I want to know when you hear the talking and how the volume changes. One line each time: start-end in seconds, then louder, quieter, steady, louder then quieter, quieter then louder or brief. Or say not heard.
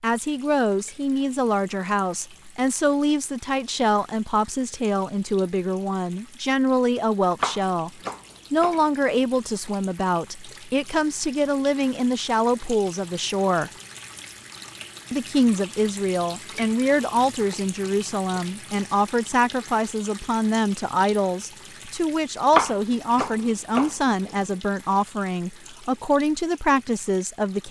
0.0-7.9 steady
8.5-13.7 steady
15.1-27.6 steady.